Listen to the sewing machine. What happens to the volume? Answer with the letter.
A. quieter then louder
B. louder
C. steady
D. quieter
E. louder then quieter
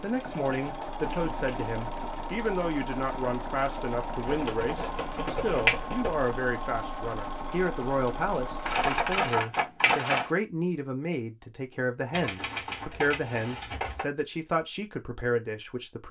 C.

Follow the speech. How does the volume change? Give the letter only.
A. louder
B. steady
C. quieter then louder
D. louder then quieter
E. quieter
B.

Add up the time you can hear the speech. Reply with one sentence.
The speech can be heard for 16 seconds in total.